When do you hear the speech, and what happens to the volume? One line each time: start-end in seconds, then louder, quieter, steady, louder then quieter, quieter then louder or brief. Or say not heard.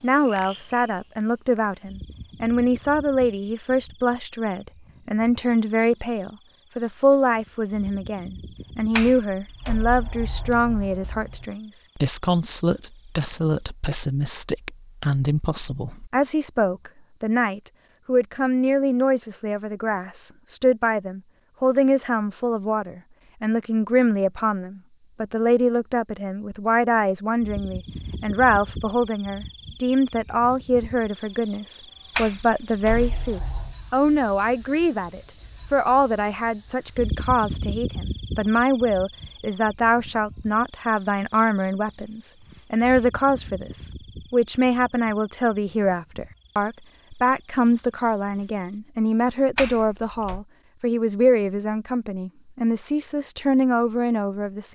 0.0-54.7 steady.